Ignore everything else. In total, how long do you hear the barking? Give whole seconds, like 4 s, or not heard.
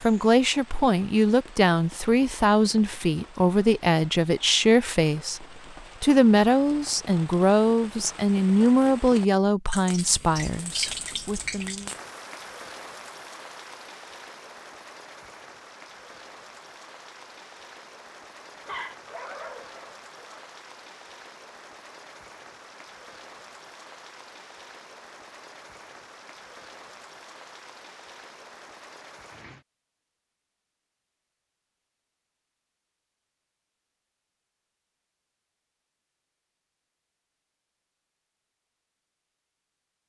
2 s.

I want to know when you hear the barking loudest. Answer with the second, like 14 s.
19 s.